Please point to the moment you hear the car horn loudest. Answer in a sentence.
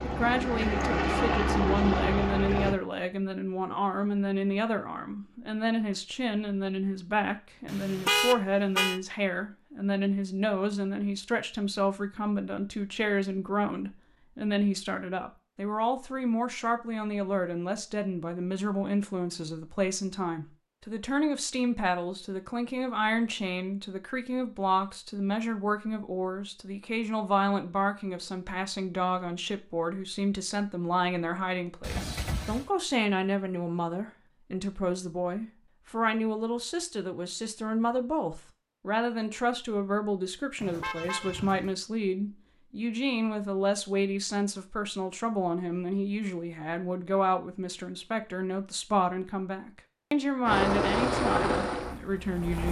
The loudest moment of the car horn is at 8 seconds.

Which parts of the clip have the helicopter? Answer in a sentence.
The helicopter can be heard from 0.0 to 2.8 s and from 50.5 to 52.6 s.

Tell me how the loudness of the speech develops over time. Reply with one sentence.
The volume of the speech stays about the same.